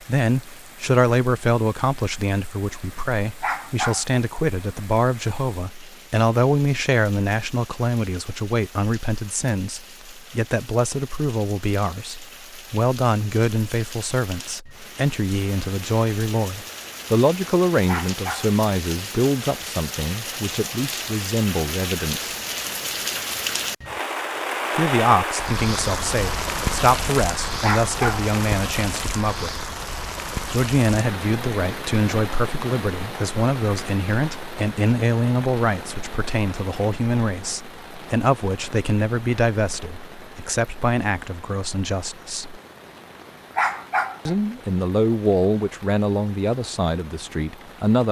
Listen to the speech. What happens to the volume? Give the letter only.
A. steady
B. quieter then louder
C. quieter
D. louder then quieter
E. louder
A.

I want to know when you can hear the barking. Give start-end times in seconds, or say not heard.
3.4-4.2, 17.9-18.5, 27.6-28.2, 43.5-44.4.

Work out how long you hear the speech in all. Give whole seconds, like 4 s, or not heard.
43 s.